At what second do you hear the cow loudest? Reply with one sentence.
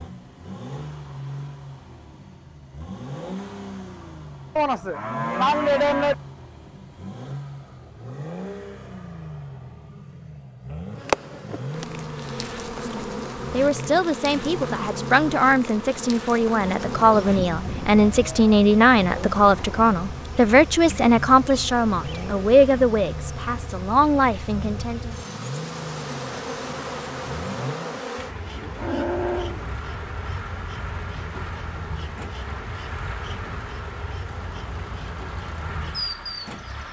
The loudest moment of the cow is at 6 seconds.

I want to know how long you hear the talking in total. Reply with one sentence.
You can hear the talking for 12 seconds altogether.